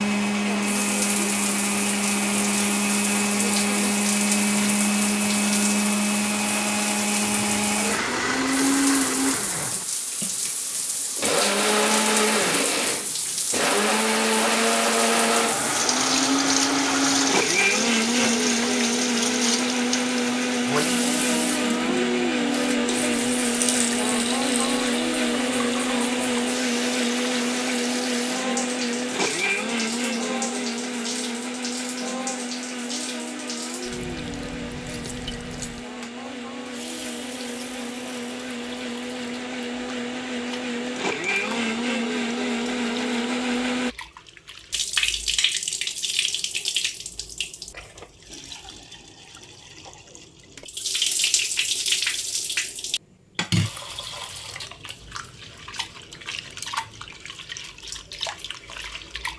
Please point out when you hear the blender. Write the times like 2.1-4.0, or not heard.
0.0-44.0.